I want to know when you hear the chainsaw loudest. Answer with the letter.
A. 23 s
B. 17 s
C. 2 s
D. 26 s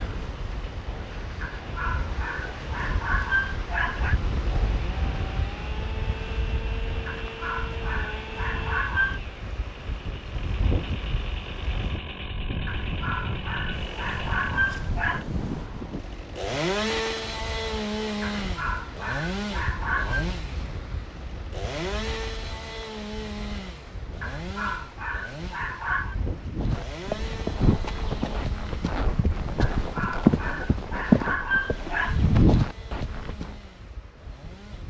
B.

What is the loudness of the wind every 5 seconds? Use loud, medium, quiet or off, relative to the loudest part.
loud, loud, loud, medium, medium, medium, quiet.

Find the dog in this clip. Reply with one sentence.
The dog can be heard from 1.4 to 4.2 s, from 7.0 to 9.2 s, from 12.7 to 15.2 s, from 18.2 to 20.2 s, from 24.2 to 26.1 s and from 29.6 to 32.2 s.